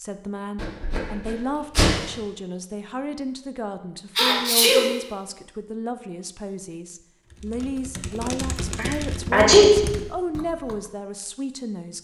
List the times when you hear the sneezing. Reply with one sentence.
The sneezing can be heard from 0.6 to 1.9 s, from 4.2 to 4.8 s and from 8.8 to 9.9 s.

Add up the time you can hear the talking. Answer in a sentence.
The talking can be heard for 12 seconds in total.